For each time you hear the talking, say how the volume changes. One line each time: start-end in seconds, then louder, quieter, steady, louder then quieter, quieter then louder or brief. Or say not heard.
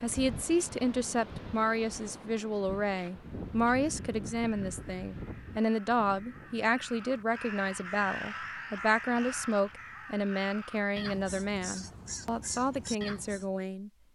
0.0-13.9 steady.